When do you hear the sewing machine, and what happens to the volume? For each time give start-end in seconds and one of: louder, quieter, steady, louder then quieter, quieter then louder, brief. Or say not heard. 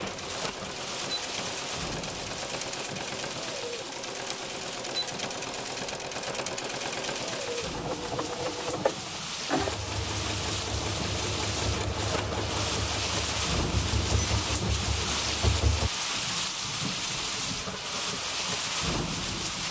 0.0-15.9 steady.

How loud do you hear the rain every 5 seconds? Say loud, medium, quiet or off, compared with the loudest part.
medium, medium, loud, loud.